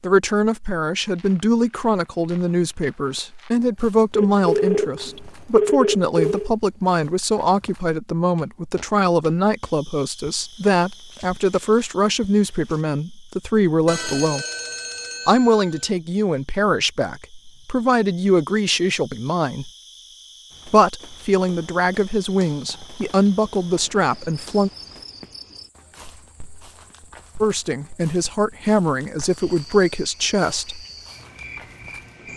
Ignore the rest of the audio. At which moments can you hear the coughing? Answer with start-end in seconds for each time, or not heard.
not heard.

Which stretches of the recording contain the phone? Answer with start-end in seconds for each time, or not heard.
4.2-6.5, 13.8-15.9, 22.6-23.9.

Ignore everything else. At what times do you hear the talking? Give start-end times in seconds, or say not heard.
0.0-14.4, 15.2-19.7, 20.6-24.7, 27.4-30.9.